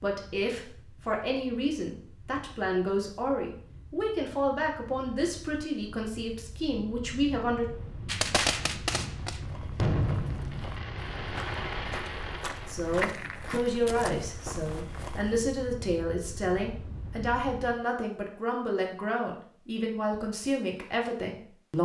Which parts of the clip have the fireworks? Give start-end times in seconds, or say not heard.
8.1-13.6.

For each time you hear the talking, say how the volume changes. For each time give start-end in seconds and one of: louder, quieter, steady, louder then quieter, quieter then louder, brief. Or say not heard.
0.0-7.7 steady
12.7-21.8 steady.